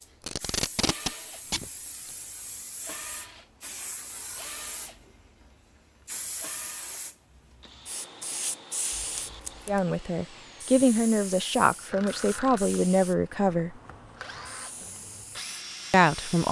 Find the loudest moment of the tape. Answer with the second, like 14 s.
1 s.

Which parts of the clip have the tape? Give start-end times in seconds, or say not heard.
0.2-2.1, 8.9-9.8.